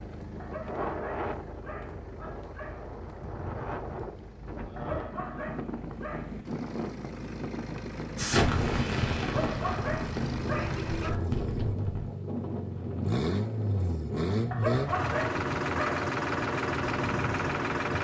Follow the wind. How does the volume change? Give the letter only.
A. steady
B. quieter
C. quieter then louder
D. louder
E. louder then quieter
A.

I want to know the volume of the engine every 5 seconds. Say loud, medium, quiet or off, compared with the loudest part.
quiet, quiet, loud, loud.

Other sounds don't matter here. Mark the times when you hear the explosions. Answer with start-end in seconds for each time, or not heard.
8.2-12.1.